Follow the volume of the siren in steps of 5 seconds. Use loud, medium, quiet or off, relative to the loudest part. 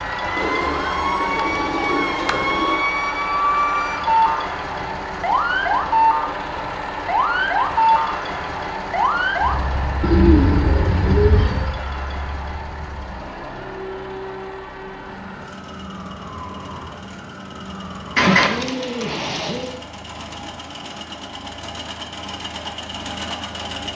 loud, loud, quiet, quiet, off.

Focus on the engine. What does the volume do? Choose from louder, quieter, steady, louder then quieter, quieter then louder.
quieter then louder.